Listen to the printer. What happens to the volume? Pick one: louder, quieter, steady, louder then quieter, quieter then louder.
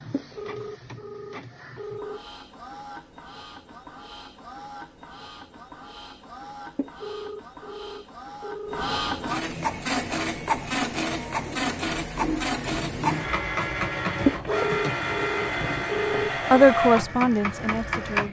louder.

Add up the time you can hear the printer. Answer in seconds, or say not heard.
18 s.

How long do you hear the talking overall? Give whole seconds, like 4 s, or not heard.
2 s.